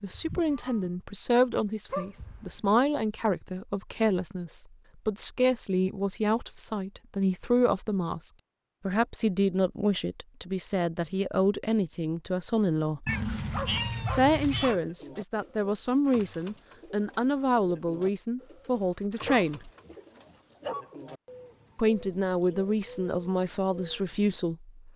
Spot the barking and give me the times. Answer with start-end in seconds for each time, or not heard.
1.9-2.6, 13.1-14.8, 19.2-20.9.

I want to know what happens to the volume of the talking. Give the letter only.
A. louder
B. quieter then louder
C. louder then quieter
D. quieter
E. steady
E.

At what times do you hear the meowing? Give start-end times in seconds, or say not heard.
0.1-0.9, 13.1-14.8.